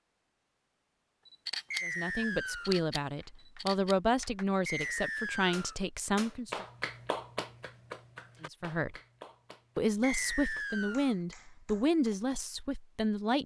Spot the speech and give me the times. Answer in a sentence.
The speech can be heard from 1.8 to 6.7 s, from 8.4 to 8.9 s and from 9.8 to 13.4 s.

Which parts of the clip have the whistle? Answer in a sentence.
You can hear the whistle from 1.7 to 2.8 s, from 4.7 to 5.8 s and from 10.0 to 11.2 s.